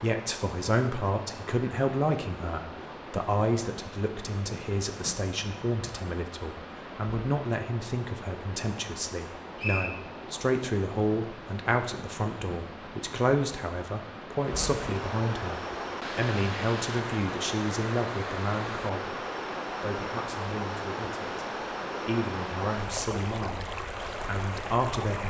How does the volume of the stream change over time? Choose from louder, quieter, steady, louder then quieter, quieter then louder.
louder.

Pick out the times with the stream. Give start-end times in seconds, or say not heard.
0.0-25.2.